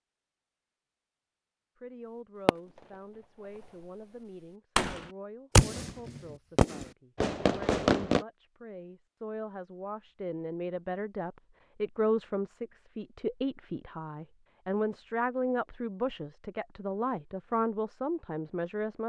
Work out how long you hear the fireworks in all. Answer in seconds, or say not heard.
5 s.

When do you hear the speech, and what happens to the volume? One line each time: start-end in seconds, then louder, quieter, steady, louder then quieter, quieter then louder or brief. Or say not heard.
1.8-19.0 louder.